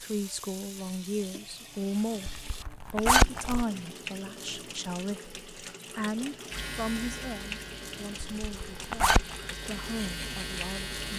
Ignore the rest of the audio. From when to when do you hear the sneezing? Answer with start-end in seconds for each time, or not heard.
not heard.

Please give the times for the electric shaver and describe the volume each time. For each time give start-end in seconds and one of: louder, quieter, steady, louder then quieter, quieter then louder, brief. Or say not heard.
6.5-11.1 quieter then louder.